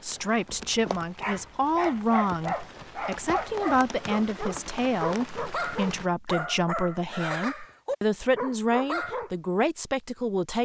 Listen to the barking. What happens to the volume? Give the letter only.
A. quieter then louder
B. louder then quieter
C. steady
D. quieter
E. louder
C.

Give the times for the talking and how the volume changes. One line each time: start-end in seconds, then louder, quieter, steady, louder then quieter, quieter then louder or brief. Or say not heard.
0.0-10.5 steady.